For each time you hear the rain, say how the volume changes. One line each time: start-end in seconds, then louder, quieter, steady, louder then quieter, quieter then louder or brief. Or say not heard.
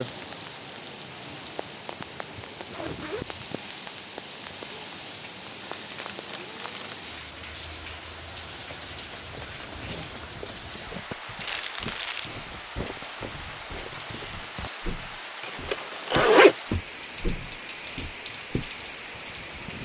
0.0-19.8 steady.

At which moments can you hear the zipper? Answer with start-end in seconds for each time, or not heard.
2.5-3.2, 9.4-10.4, 15.4-16.6.